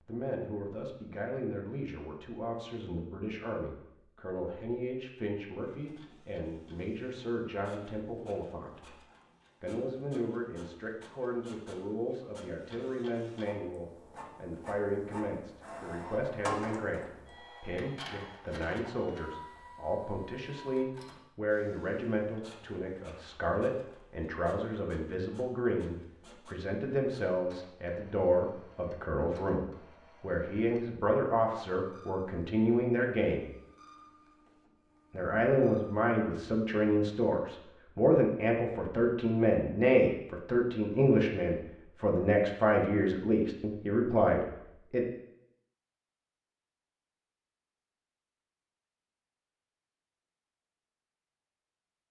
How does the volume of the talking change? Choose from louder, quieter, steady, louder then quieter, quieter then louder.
louder.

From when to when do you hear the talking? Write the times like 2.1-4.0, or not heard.
0.1-9.0, 9.6-33.5, 35.1-45.0.